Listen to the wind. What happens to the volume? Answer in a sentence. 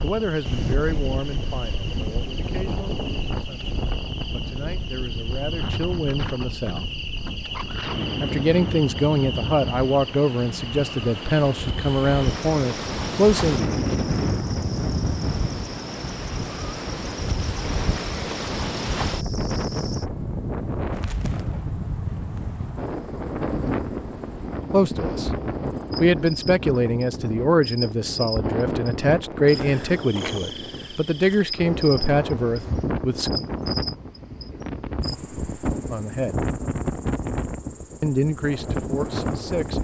The loudness of the wind stays about the same.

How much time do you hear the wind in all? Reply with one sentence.
You can hear the wind for 40 seconds altogether.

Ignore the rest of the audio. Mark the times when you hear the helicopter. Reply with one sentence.
The helicopter can't be heard in this clip.